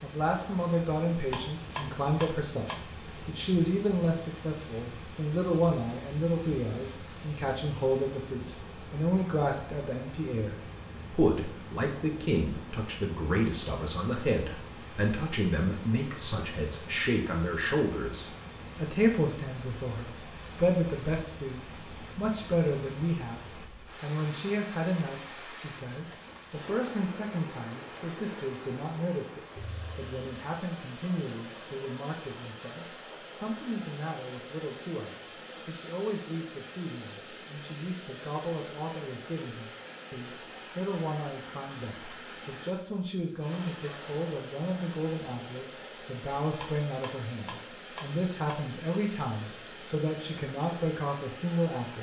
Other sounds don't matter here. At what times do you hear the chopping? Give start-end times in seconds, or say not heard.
1.2-2.8, 46.5-48.5.